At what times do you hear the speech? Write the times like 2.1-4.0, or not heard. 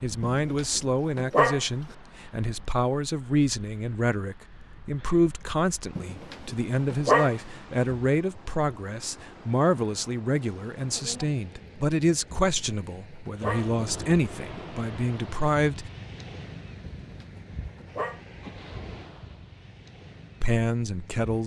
0.0-15.9, 20.4-21.4.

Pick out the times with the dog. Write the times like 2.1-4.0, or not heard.
0.2-1.6, 6.0-7.3, 12.3-13.7, 17.0-18.2.